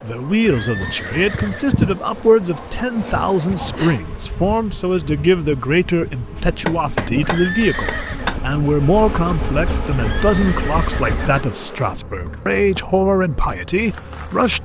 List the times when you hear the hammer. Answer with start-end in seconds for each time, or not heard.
6.7-8.4.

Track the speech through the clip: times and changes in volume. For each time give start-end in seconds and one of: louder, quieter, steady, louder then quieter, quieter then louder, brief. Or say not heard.
0.0-14.6 steady.